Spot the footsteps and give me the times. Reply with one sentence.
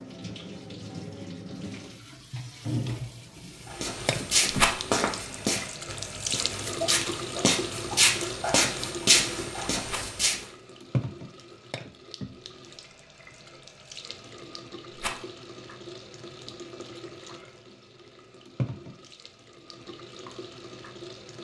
The footsteps can be heard from 3.7 to 10.3 s.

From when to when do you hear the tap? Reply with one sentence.
You can hear the tap from 0.0 to 21.3 s.